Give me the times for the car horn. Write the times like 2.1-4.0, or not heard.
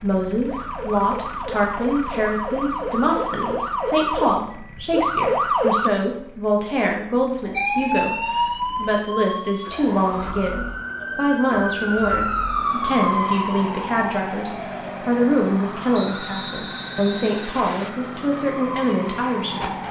not heard.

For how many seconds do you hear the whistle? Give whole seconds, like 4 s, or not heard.
2 s.